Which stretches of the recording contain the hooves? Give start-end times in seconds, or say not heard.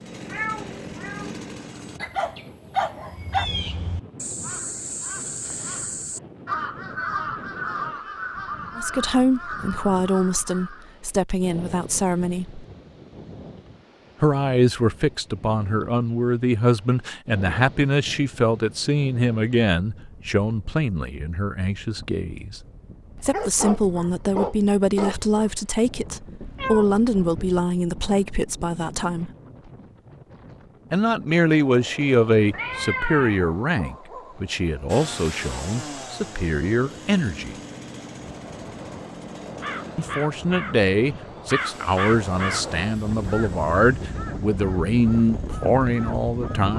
not heard.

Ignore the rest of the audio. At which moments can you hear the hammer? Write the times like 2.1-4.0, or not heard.
not heard.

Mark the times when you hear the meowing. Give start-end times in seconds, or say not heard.
0.2-1.4, 26.4-27.6, 32.5-33.5.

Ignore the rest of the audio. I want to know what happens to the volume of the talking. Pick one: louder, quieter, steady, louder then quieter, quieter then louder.
steady.